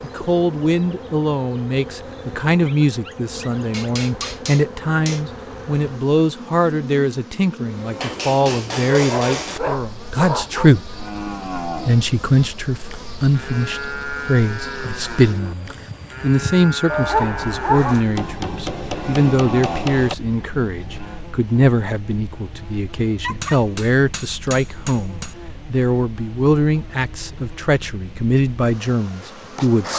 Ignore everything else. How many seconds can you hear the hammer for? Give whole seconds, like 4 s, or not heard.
7 s.